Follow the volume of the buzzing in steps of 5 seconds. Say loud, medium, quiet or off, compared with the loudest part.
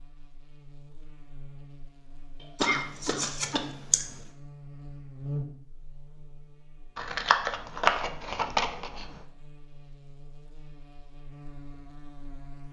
medium, loud, medium.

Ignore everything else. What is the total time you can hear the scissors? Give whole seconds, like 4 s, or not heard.
4 s.